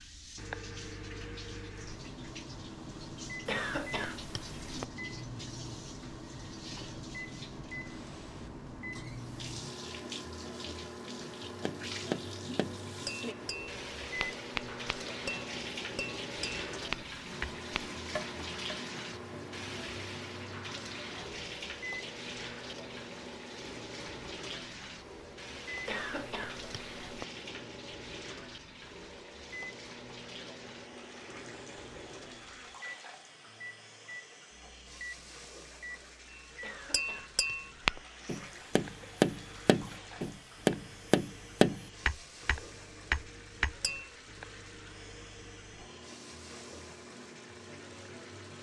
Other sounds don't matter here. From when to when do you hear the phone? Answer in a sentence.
The phone can't be heard in this clip.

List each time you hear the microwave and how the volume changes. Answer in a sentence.
The microwave can be heard from 0.0 to 48.5 s, getting quieter.